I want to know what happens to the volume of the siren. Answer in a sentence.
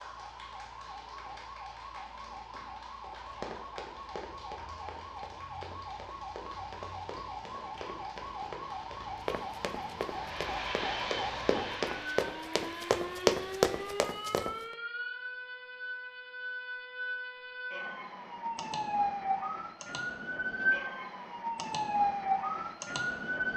The loudness of the siren goes up.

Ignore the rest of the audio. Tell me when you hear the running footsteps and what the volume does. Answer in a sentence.
The running footsteps can be heard from 3.0 to 14.5 s, getting louder.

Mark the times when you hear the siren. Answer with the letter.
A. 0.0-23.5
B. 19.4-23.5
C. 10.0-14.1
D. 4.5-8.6
A.